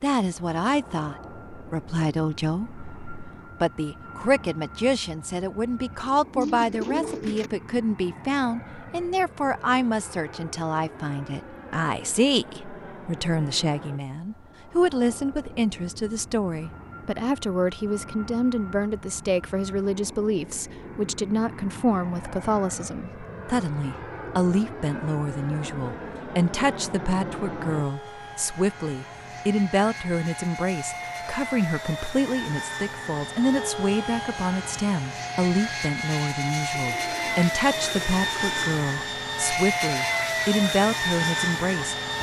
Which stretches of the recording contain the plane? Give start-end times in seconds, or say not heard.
0.0-42.1.